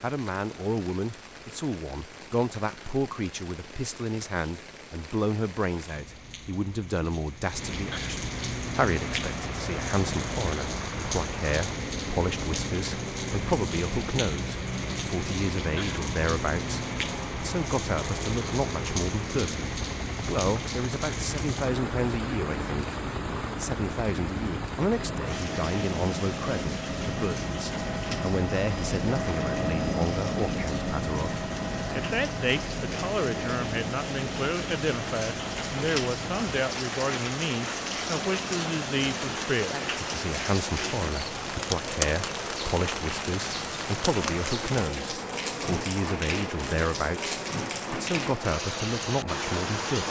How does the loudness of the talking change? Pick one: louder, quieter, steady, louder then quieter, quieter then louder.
steady.